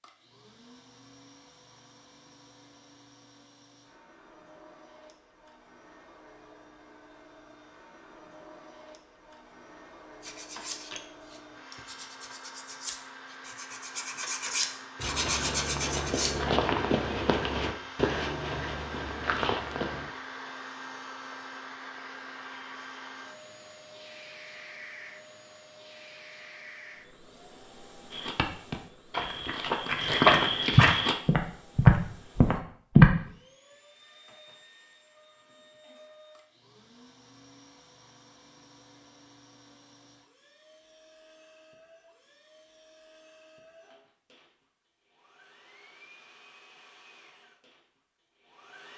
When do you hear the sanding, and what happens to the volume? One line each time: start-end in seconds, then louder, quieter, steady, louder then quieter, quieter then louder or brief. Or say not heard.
10.2-16.4 quieter then louder.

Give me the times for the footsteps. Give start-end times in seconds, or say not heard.
15.0-20.1, 28.1-33.1.